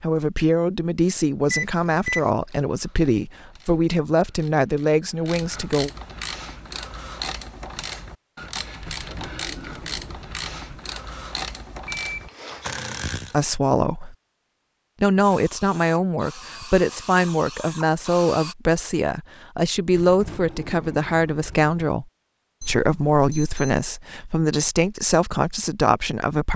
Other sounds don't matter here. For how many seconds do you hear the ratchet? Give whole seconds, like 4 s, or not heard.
11 s.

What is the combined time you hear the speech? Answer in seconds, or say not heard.
18 s.